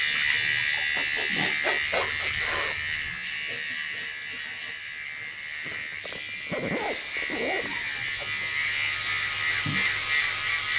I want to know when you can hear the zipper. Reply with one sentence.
The zipper can be heard from 2.0 to 3.2 s and from 5.7 to 8.1 s.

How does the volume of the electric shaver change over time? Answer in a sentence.
The loudness of the electric shaver goes down, then up.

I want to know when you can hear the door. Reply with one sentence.
You can't hear the door here.